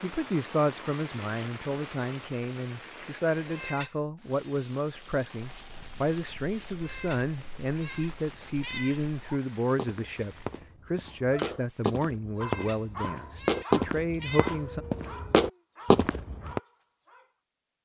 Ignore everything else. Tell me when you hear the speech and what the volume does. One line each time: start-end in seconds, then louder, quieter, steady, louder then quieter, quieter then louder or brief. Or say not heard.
0.0-14.8 steady.